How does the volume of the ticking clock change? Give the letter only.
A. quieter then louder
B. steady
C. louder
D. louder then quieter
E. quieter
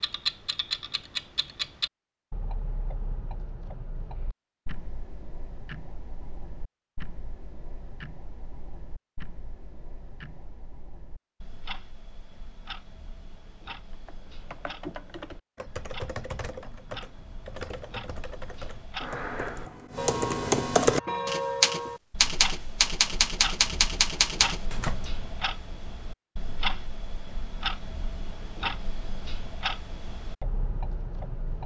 A.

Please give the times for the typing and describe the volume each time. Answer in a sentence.
The typing can be heard from 13.9 to 25.2 s, getting louder.